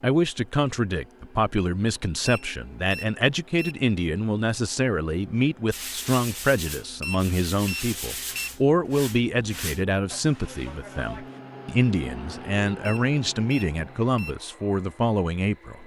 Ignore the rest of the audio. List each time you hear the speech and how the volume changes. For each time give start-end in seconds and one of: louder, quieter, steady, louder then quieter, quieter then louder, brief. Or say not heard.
0.0-15.8 steady.